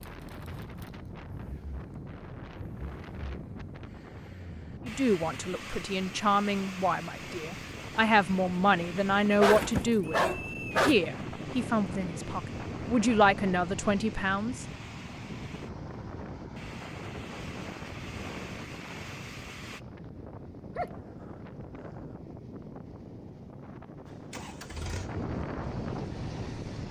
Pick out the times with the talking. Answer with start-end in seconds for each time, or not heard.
4.8-14.7.